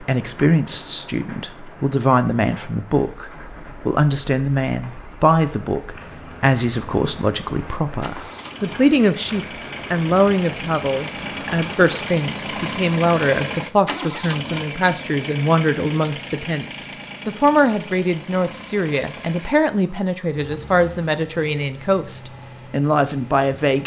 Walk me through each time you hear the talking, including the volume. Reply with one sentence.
The talking can be heard from 0.0 to 23.8 s, at a steady volume.